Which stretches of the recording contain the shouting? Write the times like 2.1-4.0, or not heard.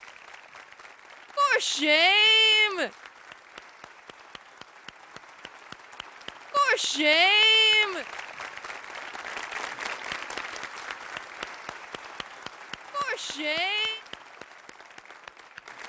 1.4-2.9, 6.5-8.1, 12.9-14.0.